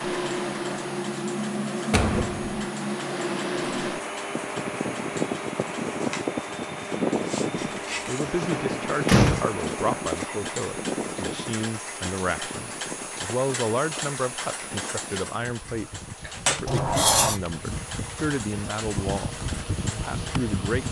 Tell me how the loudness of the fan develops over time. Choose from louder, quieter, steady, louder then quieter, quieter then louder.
quieter then louder.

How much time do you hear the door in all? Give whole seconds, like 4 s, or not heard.
3 s.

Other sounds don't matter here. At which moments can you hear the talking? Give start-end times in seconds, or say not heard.
8.1-20.8.